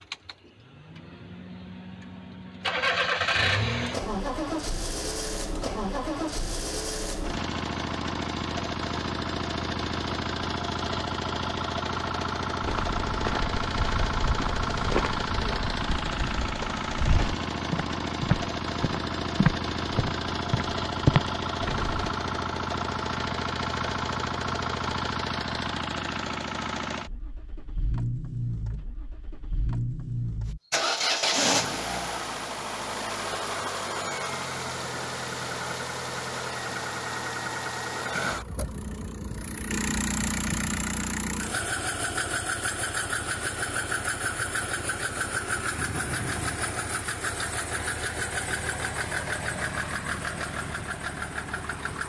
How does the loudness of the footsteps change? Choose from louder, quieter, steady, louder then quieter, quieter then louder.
louder.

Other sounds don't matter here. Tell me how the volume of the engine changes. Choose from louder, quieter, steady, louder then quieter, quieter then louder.
steady.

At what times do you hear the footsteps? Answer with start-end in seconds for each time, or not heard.
12.6-22.1.